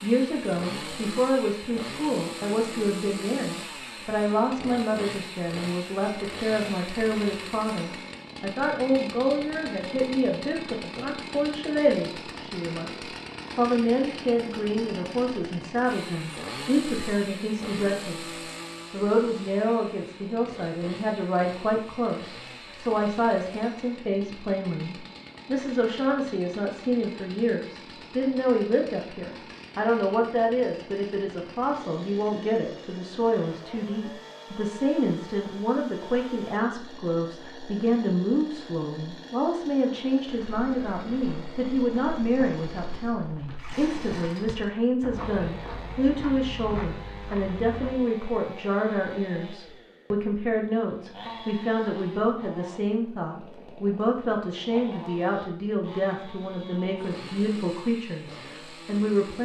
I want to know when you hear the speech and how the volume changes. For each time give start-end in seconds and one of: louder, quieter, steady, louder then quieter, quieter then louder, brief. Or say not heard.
0.0-59.4 steady.